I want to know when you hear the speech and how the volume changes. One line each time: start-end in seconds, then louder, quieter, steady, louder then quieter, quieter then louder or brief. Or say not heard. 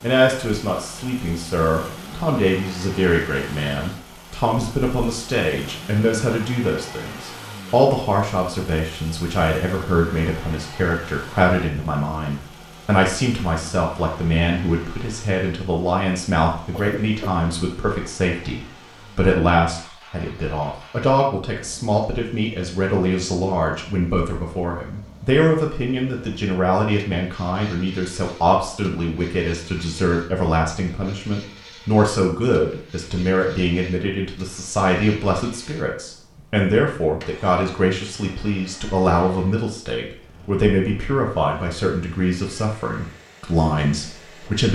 0.0-44.7 steady.